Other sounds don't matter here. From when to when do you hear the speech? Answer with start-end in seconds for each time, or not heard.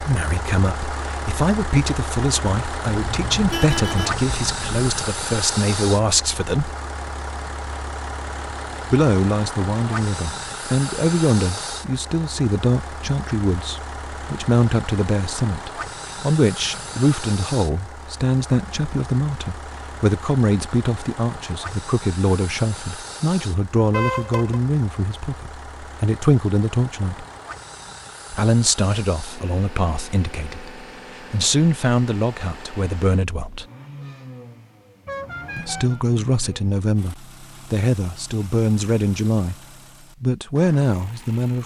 0.0-6.8, 8.8-27.2, 28.3-33.6, 35.5-39.5, 40.2-41.6.